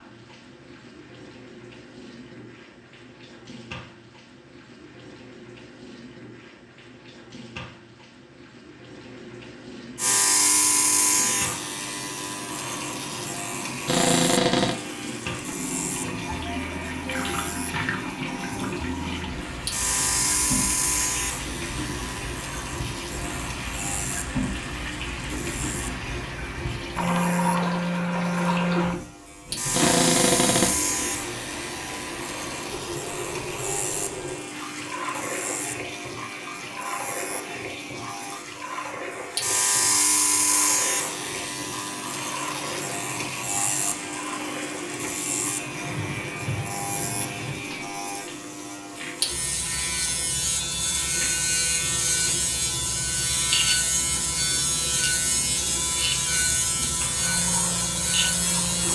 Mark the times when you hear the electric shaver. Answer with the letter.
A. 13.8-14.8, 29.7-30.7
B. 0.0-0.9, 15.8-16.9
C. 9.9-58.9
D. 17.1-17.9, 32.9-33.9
C.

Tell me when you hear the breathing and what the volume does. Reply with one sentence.
The breathing can't be heard in this clip.